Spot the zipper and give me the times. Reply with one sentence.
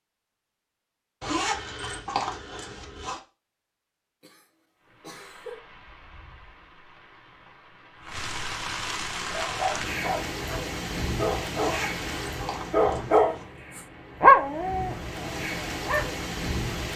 You can hear the zipper from 1.2 to 3.2 s and from 11.5 to 13.4 s.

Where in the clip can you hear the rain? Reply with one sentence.
The rain can be heard from 4.8 to 16.9 s.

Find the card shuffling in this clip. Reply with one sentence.
You can't hear the card shuffling here.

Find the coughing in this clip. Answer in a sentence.
You can hear the coughing from 4.2 to 5.6 s.